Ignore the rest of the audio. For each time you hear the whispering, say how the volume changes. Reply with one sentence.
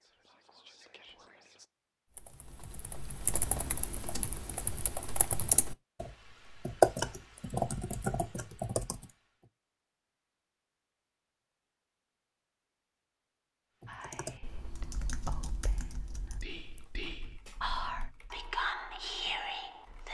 You can hear the whispering briefly from 0.0 to 1.7 s; and from 13.8 to 20.0 s, getting quieter then louder.